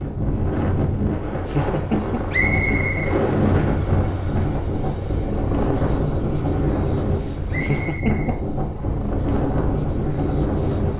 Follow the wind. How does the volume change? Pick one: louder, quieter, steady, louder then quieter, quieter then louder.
steady.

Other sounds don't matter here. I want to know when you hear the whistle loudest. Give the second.
3 s.